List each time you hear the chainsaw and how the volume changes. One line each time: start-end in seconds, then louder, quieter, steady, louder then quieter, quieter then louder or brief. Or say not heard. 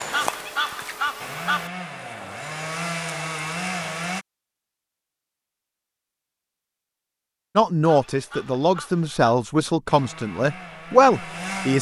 0.0-4.2 louder
9.8-11.7 brief.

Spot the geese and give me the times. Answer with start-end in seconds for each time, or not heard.
0.1-1.7, 7.8-9.3.